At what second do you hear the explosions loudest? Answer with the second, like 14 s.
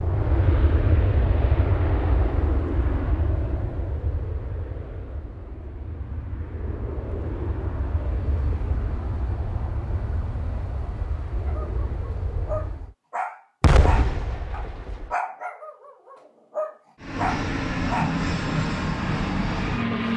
14 s.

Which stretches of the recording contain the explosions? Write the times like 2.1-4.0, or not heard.
13.6-15.1.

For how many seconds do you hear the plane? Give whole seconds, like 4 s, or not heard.
16 s.